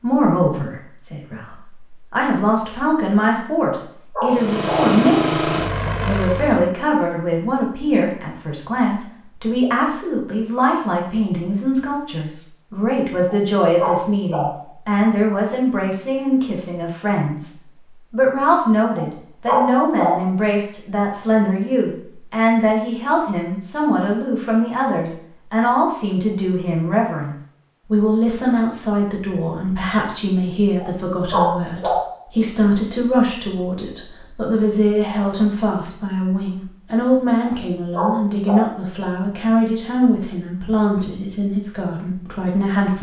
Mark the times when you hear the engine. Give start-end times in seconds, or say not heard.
4.2-6.8.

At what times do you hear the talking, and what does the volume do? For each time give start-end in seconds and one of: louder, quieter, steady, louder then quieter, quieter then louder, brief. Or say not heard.
0.0-42.9 steady.